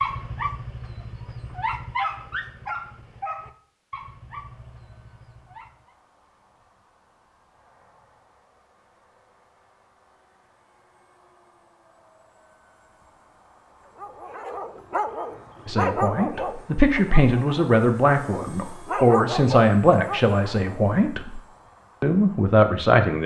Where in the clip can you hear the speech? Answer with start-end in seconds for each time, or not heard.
15.7-21.4, 22.0-23.2.